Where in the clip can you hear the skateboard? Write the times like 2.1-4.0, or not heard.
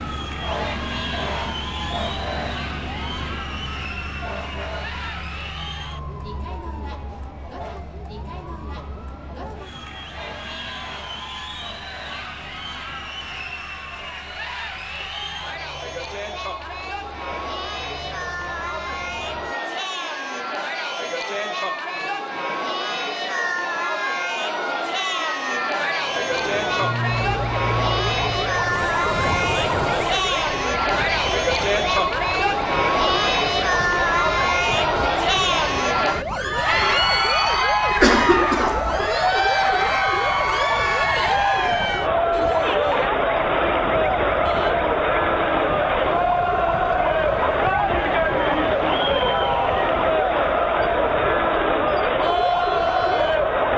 not heard.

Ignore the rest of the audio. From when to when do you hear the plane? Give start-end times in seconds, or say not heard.
25.9-30.2.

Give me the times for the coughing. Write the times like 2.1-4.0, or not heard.
38.0-39.0.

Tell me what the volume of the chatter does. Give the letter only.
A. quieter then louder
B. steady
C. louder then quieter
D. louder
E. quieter
D.